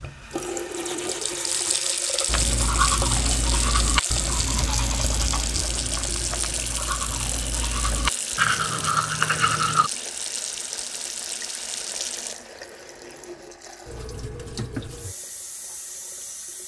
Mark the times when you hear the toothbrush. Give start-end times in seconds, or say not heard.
2.2-9.9.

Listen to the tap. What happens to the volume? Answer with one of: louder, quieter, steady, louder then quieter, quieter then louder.
quieter.